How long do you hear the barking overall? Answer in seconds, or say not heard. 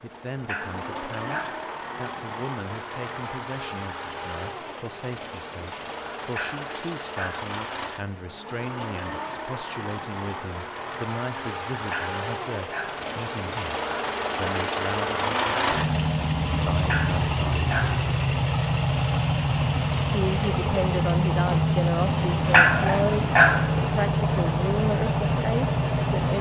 6 s.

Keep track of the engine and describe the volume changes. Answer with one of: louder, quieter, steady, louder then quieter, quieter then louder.
louder.